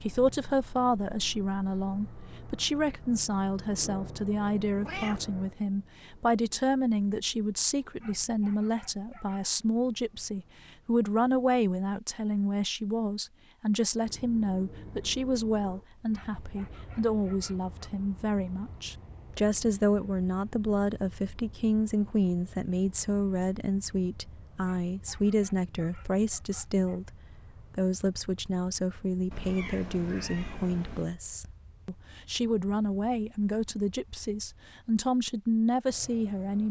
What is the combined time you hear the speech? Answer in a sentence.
The speech can be heard for 36 seconds in total.